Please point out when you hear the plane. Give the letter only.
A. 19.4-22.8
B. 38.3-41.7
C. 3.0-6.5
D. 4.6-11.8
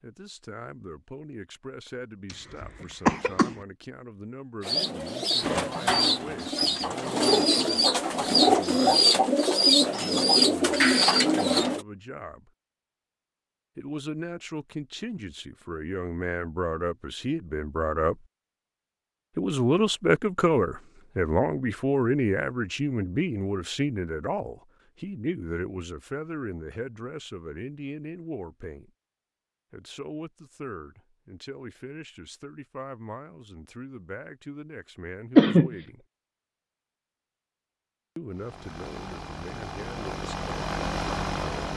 B.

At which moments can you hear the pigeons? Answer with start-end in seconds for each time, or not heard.
4.6-11.8.